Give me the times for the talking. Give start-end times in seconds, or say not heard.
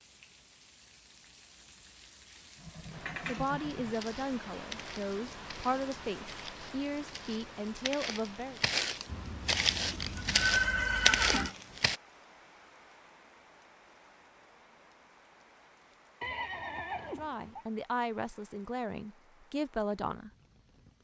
3.2-8.6, 17.1-20.3.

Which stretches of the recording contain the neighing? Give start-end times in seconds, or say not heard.
2.6-4.0, 9.1-11.6, 16.2-17.6.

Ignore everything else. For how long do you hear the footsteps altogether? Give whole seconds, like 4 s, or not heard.
8 s.